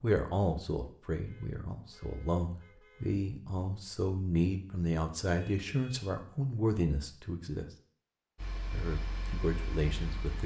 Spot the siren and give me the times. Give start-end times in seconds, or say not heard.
not heard.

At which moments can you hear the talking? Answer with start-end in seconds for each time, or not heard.
0.0-7.7, 8.7-10.4.